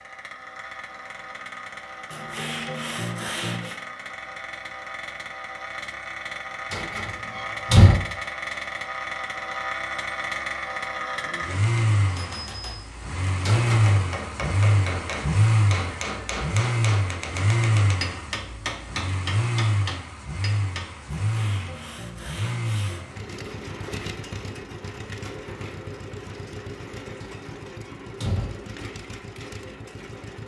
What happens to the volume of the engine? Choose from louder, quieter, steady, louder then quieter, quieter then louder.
louder then quieter.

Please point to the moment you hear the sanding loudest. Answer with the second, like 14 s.
3 s.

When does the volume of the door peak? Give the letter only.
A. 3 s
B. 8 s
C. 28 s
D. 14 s
B.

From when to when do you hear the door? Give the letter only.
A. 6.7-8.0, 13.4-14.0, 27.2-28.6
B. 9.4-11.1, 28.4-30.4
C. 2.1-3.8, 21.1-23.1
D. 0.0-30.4
A.